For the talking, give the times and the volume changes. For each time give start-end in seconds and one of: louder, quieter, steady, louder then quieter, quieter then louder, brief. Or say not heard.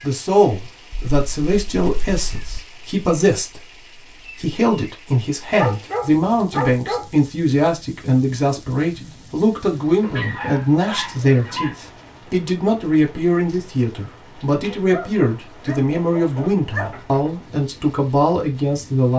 0.0-19.1 steady.